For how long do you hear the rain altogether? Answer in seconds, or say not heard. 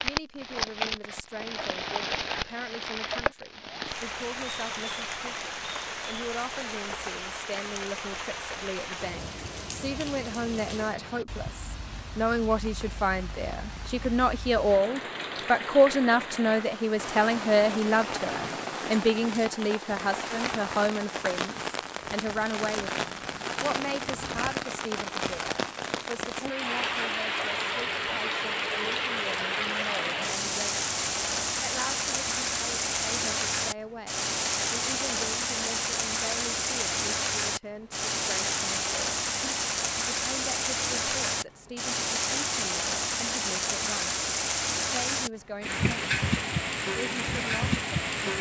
48 s.